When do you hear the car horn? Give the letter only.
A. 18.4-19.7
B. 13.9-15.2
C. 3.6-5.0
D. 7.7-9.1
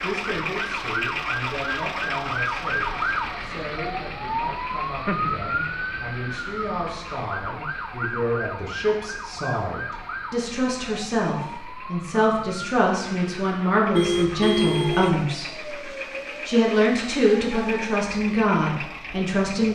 B.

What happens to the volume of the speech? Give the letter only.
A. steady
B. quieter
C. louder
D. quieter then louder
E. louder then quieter
C.